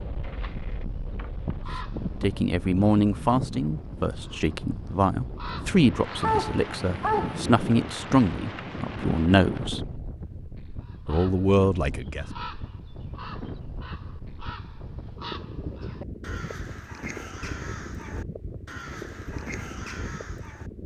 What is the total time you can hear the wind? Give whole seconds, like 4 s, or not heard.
21 s.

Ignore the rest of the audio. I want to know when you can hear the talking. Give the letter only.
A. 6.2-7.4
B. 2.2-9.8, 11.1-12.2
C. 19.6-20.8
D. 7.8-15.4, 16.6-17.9
B.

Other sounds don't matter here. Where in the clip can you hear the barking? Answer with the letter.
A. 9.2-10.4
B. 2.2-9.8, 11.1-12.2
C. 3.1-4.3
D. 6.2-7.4
D.